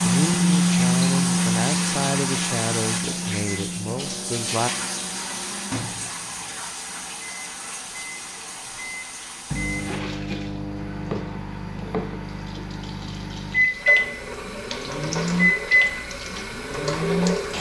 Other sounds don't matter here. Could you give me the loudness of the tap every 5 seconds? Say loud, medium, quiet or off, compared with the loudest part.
loud, medium, medium, loud.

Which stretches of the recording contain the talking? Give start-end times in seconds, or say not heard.
0.0-4.7.